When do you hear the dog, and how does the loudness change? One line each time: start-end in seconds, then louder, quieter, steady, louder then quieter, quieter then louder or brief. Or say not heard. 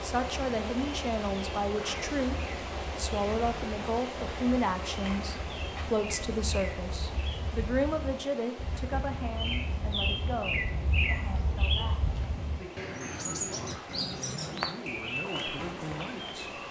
not heard.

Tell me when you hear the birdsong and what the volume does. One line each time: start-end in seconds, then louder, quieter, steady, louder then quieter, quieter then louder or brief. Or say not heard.
0.0-16.6 louder.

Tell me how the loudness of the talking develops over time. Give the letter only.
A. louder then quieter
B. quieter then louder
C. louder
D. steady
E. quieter
E.